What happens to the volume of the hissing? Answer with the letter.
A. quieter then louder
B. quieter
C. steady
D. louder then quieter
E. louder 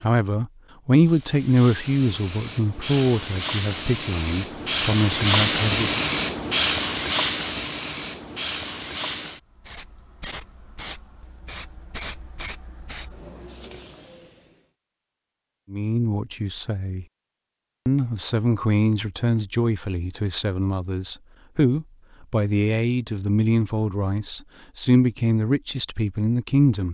D.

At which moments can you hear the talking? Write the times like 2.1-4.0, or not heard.
0.0-6.0, 15.7-17.1, 17.9-26.8.